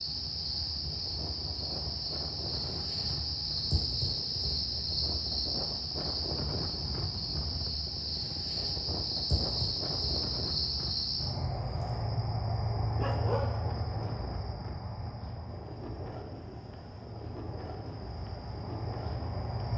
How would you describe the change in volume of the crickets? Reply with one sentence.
The volume of the crickets goes down.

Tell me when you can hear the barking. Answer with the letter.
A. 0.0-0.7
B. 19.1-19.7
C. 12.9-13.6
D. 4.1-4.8
C.